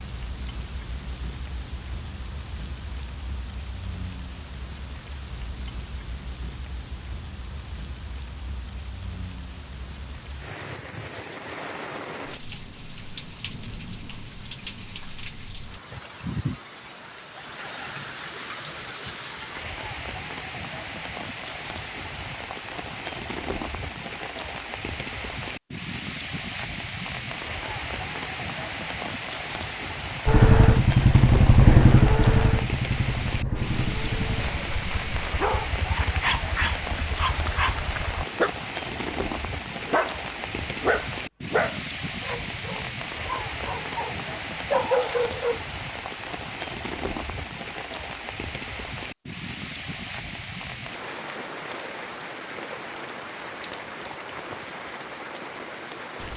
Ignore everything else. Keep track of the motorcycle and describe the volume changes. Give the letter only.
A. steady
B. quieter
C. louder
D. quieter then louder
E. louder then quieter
B.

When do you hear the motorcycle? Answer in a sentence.
The motorcycle can be heard from 30.2 to 38.2 s.